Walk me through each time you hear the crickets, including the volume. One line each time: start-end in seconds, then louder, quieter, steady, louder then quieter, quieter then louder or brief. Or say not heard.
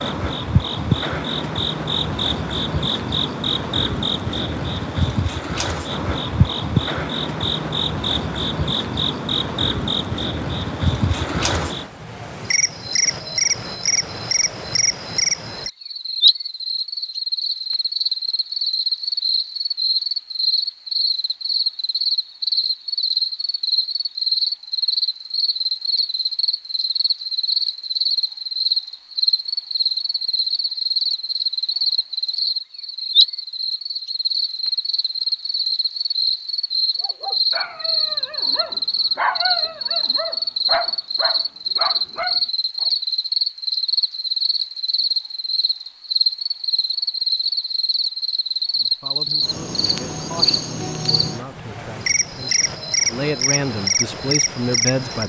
0.0-55.2 steady.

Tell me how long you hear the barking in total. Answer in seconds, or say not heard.
6 s.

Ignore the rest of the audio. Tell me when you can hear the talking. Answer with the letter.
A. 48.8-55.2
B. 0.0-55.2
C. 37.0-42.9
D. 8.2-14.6
A.